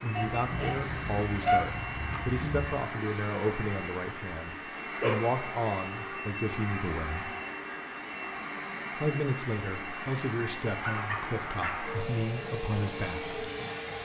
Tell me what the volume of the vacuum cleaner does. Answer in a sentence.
The loudness of the vacuum cleaner stays about the same.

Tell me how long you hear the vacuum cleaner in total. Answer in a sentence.
The vacuum cleaner can be heard for 14 seconds in total.